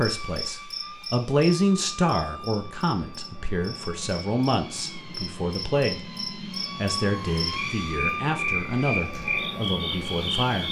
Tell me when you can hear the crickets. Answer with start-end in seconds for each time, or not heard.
0.0-10.6.